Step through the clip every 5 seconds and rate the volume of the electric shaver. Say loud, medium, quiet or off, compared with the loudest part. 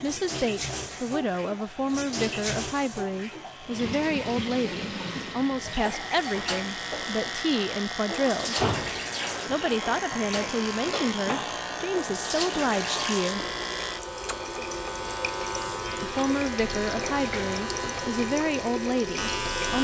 quiet, loud, loud, loud.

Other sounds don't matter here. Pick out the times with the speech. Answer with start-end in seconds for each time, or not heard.
0.0-8.6, 9.4-13.4, 16.0-19.7.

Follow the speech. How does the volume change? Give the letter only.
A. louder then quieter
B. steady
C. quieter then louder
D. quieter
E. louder
B.